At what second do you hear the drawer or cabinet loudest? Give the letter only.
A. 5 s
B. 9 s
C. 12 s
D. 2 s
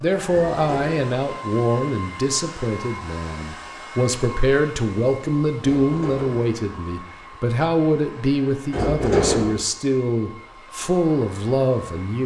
B.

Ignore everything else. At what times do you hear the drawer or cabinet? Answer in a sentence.
The drawer or cabinet can be heard from 0.2 to 1.1 s, from 5.6 to 6.5 s and from 8.7 to 9.6 s.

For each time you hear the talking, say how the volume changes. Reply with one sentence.
The talking can be heard from 0.0 to 12.2 s, at a steady volume.